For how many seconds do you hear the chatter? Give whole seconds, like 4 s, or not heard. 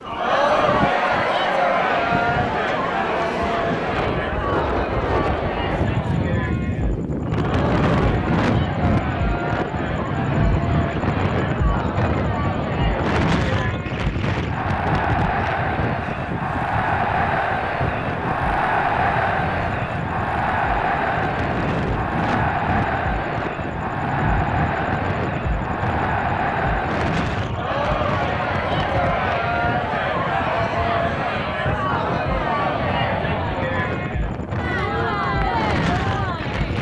37 s.